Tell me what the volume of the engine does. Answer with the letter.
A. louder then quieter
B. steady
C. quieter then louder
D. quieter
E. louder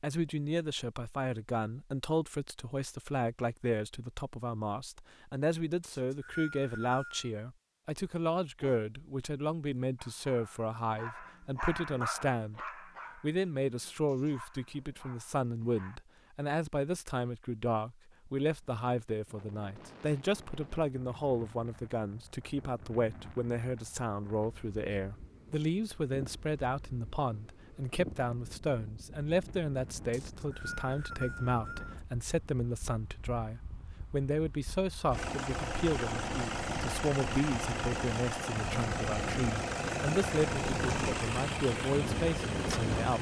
B.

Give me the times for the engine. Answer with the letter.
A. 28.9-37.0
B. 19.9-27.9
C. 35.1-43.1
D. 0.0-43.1
C.